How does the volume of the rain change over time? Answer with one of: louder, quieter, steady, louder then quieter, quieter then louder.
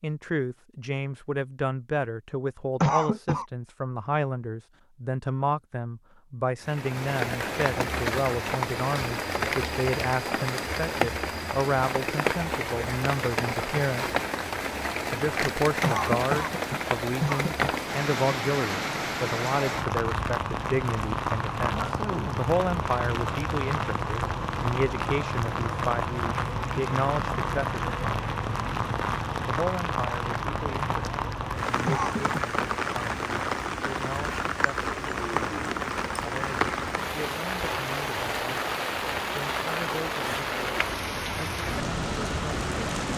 steady.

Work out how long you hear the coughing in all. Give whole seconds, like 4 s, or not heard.
3 s.